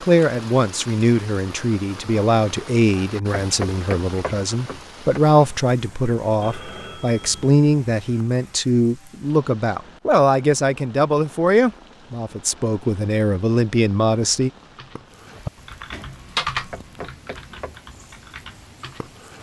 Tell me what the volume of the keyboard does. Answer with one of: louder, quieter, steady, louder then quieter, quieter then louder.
louder then quieter.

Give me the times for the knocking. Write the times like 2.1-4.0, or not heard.
3.4-5.2, 16.7-17.8.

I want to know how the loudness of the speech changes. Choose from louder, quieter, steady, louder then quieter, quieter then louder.
steady.